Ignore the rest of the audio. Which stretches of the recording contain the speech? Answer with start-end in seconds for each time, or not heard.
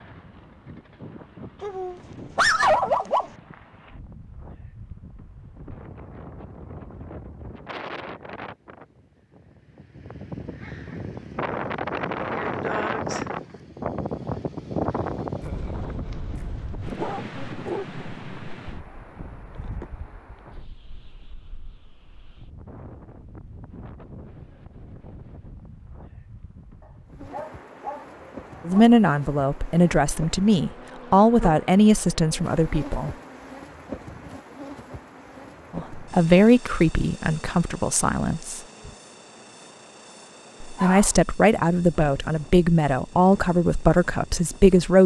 28.6-33.1, 35.8-38.6, 40.6-45.0.